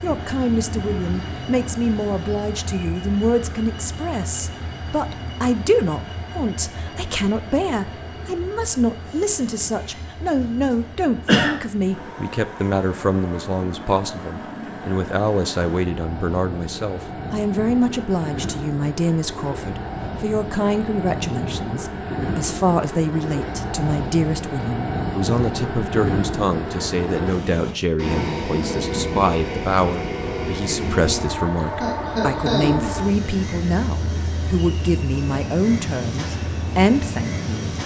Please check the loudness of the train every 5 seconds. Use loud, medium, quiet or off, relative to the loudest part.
medium, medium, medium, medium, loud, loud, loud, loud.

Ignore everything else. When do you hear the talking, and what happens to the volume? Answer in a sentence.
You can hear the talking from 0.0 to 37.7 s, at a steady volume.